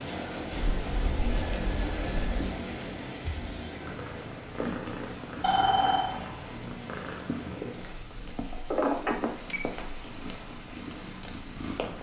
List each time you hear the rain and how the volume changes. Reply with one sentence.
You can hear the rain from 0.0 to 11.9 s, getting quieter.